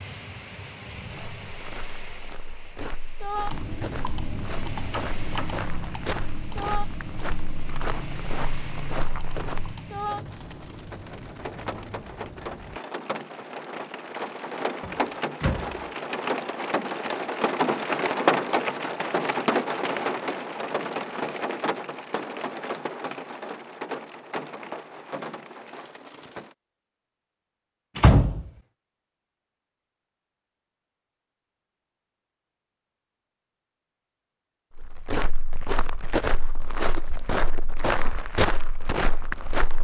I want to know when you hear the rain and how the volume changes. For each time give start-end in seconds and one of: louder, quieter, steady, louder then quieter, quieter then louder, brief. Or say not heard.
0.0-26.6 louder then quieter.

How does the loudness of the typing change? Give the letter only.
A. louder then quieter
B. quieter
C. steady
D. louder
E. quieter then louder
B.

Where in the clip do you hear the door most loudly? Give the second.
28 s.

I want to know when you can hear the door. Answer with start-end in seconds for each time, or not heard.
4.9-5.6, 14.8-15.8, 27.9-28.5.